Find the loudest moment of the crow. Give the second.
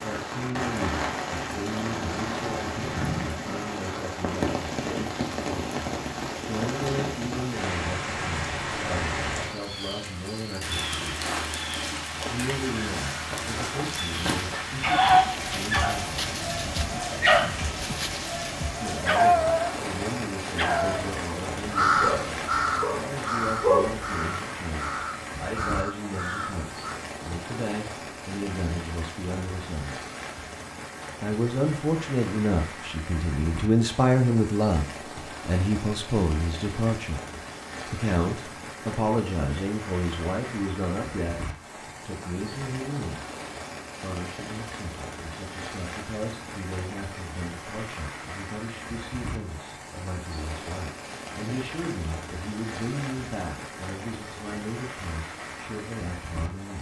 22 s.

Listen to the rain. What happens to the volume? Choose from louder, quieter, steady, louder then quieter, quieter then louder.
quieter.